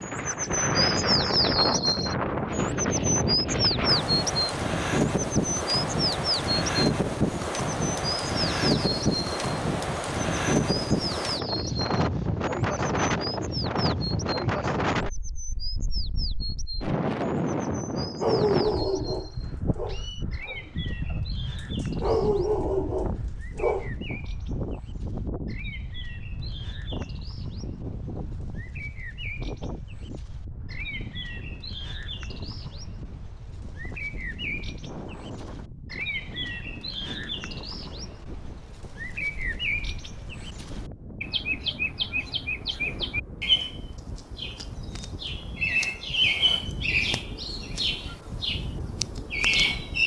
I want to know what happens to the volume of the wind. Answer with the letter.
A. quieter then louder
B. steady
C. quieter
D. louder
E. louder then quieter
C.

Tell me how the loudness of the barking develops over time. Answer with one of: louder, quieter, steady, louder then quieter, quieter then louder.
quieter then louder.